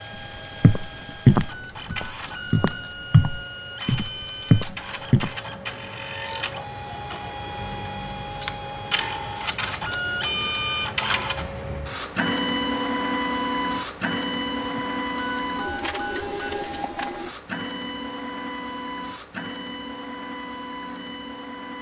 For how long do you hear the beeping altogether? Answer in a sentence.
The beeping can be heard for 4 seconds in total.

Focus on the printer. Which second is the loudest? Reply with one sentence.
The loudest moment of the printer is at 13 seconds.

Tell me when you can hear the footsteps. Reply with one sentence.
The footsteps can be heard from 0.6 to 5.3 s.